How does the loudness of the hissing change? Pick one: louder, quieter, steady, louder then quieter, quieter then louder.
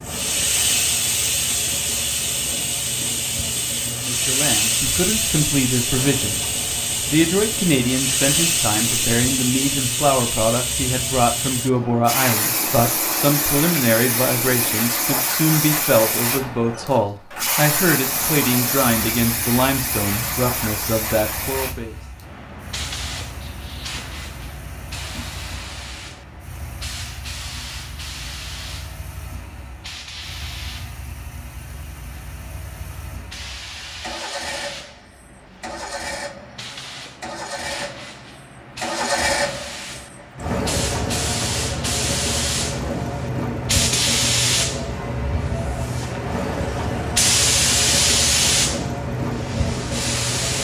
quieter then louder.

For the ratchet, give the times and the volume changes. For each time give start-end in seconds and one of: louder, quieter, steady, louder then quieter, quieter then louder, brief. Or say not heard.
not heard.